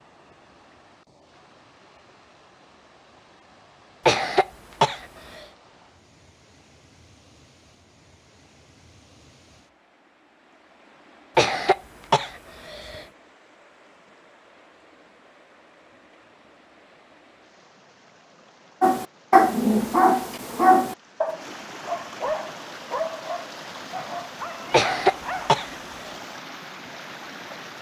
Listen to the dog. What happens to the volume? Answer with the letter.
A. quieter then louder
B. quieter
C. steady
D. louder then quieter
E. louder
B.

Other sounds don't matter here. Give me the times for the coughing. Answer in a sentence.
You can hear the coughing from 4.0 to 5.4 s, from 11.3 to 13.1 s and from 24.7 to 26.1 s.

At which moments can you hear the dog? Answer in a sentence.
You can hear the dog from 18.8 to 25.5 s.